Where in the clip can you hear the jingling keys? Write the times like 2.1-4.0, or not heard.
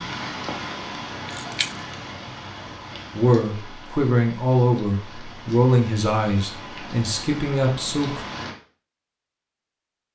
1.2-1.9.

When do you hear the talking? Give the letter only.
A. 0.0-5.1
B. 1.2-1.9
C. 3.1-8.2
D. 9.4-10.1
C.